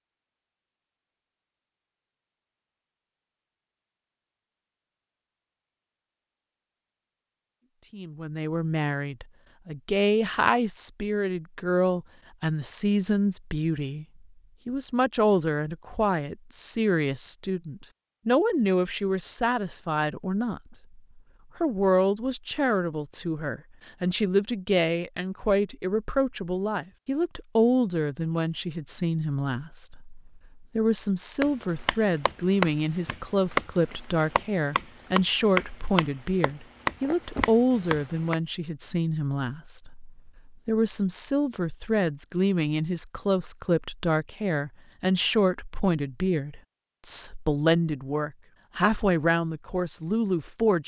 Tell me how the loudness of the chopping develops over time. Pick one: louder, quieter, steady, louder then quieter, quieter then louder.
steady.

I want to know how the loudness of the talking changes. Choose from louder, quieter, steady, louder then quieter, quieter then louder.
steady.